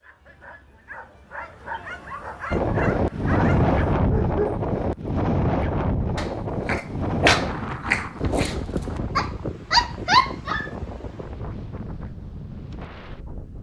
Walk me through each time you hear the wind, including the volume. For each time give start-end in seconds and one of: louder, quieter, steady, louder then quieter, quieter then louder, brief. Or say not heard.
2.5-13.5 quieter.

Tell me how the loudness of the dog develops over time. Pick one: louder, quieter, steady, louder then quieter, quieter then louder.
louder.